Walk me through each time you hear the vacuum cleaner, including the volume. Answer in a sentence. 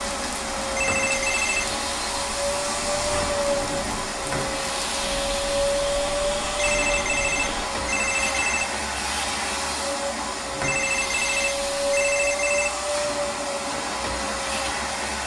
The vacuum cleaner can be heard from 0.0 to 15.2 s, at a steady volume.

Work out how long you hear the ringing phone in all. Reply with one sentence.
The ringing phone can be heard for 5 seconds in total.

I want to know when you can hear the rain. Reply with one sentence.
You can hear the rain from 0.0 to 7.7 s.